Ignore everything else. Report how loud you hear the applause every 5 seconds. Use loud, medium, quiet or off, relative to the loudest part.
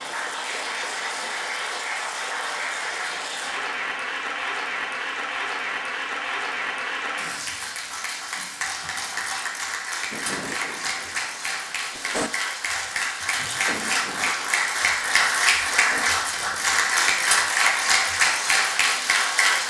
medium, medium, medium, loud.